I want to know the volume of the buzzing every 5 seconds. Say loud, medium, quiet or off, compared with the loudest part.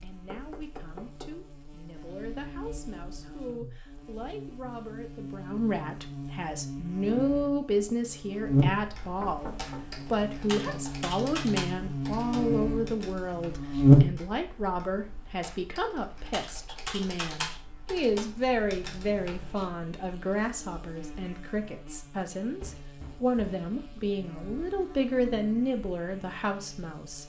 quiet, medium, loud, quiet, quiet, quiet.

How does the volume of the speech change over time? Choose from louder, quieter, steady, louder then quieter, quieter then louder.
louder.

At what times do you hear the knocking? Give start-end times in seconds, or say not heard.
0.2-1.3, 9.2-10.8, 22.6-23.6.